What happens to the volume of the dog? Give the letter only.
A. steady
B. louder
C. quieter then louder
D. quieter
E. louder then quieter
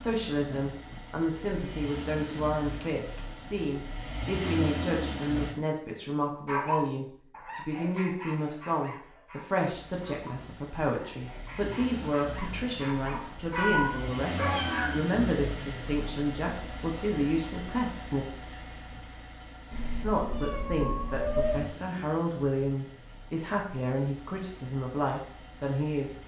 C.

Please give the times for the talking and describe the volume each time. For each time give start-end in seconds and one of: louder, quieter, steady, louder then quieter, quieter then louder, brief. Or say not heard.
0.0-18.2 steady
20.0-26.1 steady.